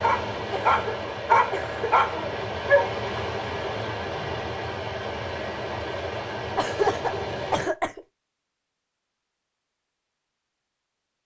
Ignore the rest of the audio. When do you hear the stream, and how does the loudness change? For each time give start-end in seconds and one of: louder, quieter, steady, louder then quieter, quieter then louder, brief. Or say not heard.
0.0-7.8 steady.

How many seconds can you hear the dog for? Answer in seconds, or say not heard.
3 s.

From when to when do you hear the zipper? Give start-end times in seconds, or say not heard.
not heard.